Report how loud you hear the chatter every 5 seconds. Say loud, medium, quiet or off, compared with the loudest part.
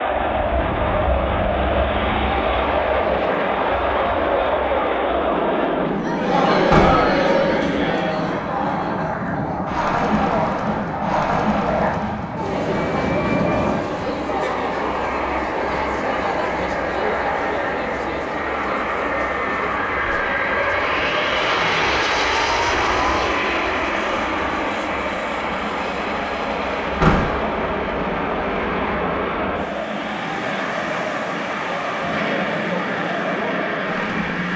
loud, loud, loud, medium, medium, medium, medium.